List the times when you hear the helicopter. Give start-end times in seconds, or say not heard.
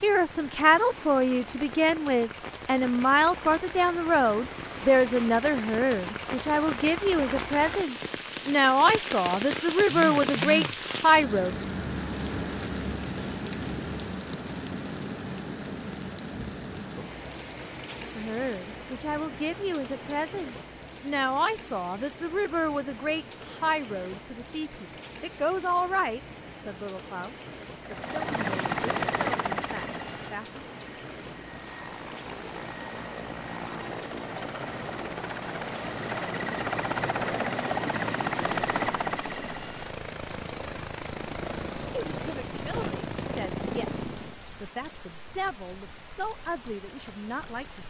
27.8-44.4.